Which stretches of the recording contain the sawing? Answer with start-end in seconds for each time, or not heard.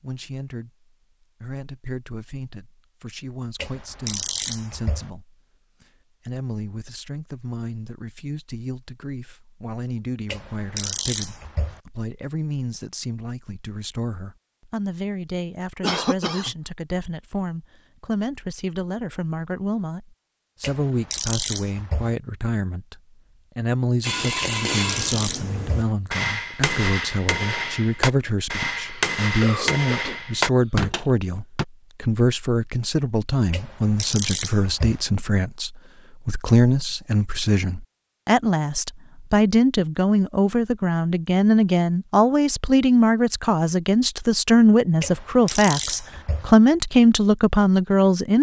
not heard.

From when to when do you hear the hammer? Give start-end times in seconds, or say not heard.
24.0-31.6.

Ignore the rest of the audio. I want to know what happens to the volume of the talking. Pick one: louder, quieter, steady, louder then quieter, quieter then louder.
louder.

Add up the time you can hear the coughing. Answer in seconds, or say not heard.
3 s.